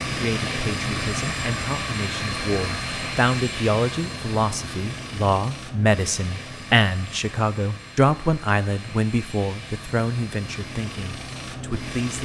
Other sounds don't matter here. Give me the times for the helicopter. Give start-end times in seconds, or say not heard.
0.0-12.1.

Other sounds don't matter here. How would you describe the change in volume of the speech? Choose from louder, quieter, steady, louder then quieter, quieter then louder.
louder then quieter.